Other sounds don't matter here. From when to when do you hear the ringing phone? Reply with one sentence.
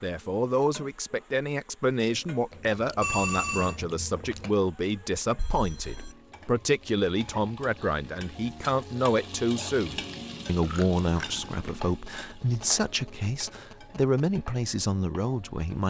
The ringing phone can be heard from 3.0 to 3.8 s, from 5.3 to 6.2 s and from 12.1 to 14.3 s.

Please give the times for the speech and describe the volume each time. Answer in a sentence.
You can hear the speech from 0.0 to 15.8 s, at a steady volume.